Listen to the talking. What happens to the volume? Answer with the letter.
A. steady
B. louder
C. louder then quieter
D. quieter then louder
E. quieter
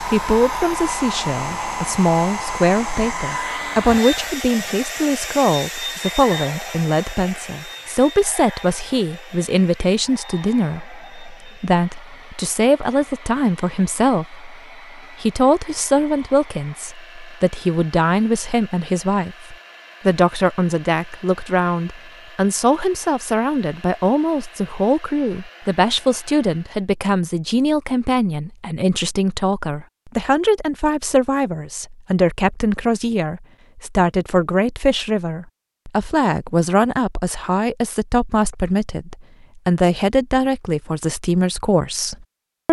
A.